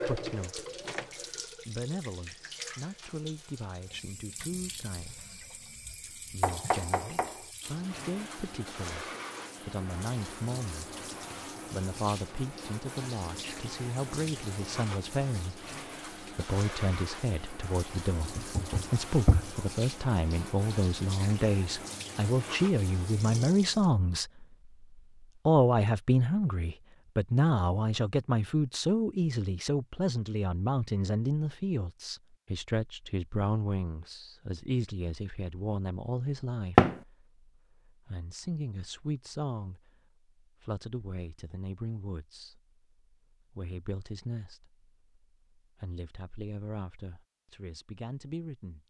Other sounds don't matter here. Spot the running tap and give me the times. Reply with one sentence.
You can hear the running tap from 0.0 to 23.9 s.